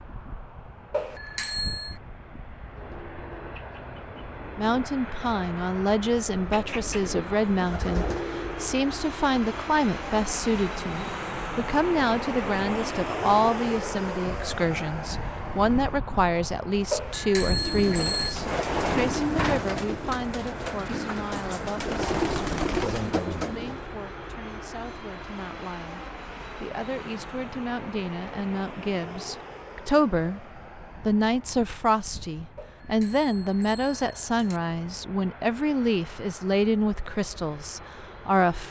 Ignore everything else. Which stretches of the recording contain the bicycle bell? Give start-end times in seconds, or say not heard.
0.9-1.9, 16.9-18.4, 32.5-34.6.